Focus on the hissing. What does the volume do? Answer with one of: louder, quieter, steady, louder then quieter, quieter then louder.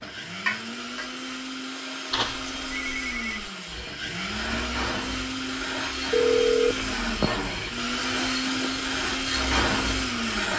quieter then louder.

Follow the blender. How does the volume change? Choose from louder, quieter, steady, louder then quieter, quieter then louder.
louder.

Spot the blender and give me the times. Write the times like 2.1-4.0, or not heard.
0.0-10.5.